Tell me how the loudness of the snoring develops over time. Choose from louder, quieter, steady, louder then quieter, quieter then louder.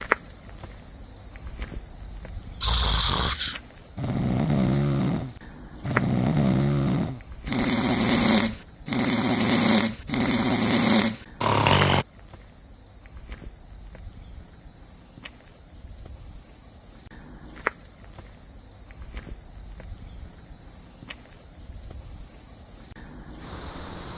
steady.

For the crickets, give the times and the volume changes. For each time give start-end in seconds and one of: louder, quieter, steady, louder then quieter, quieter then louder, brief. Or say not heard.
0.0-24.1 steady.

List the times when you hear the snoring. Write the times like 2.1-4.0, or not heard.
2.6-12.1.